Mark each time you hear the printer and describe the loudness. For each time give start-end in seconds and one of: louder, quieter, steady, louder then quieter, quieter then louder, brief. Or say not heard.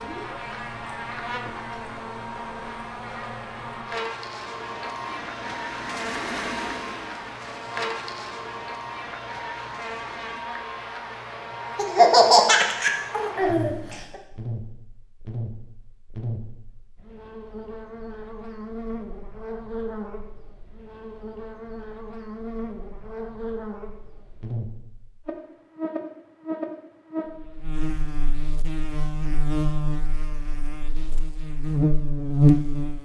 0.0-10.4 louder then quieter.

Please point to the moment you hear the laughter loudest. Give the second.
12 s.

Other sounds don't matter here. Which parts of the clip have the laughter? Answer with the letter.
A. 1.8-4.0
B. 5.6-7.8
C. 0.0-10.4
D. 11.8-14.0
D.